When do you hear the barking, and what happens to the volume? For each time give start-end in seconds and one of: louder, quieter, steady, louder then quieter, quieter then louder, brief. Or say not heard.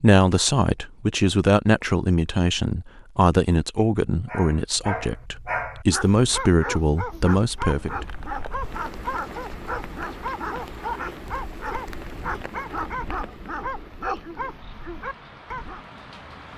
4.2-15.8 steady.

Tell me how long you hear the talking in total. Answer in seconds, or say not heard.
8 s.